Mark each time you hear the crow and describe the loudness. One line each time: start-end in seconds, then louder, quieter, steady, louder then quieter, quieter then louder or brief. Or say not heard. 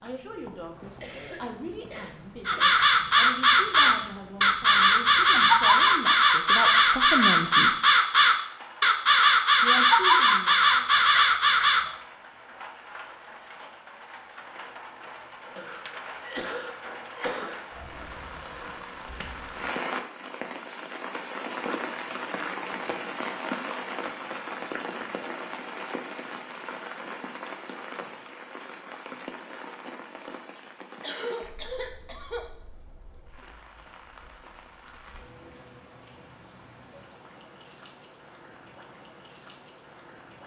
2.5-11.8 steady.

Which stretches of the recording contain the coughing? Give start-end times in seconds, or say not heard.
1.0-2.7, 15.6-17.6, 31.0-32.5.